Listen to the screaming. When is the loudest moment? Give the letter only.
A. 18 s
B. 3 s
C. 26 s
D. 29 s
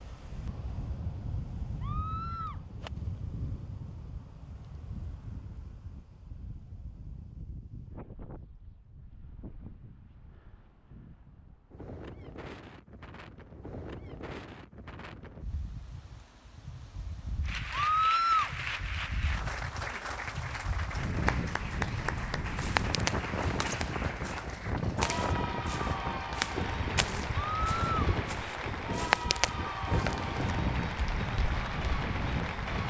A.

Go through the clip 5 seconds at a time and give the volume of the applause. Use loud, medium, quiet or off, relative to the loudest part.
off, off, off, loud, loud, loud, loud.